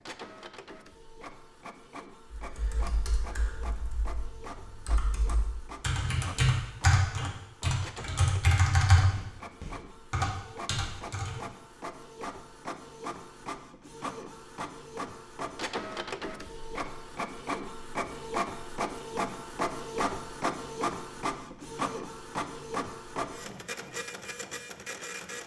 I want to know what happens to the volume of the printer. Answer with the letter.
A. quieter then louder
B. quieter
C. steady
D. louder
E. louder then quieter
D.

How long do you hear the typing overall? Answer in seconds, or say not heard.
9 s.